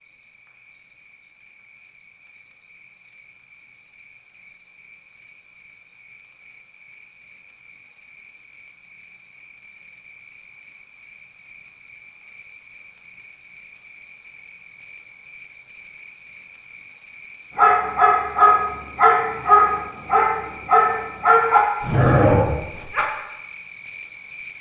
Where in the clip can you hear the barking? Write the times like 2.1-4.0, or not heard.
17.6-23.1.